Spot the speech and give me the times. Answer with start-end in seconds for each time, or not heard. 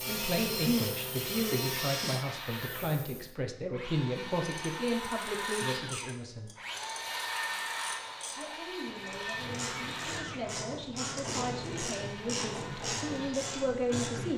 0.1-6.5, 8.3-14.3.